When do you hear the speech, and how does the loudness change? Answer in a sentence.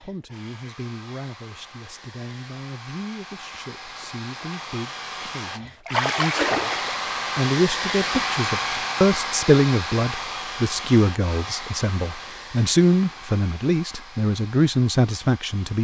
The speech can be heard from 0.0 to 15.7 s, getting louder.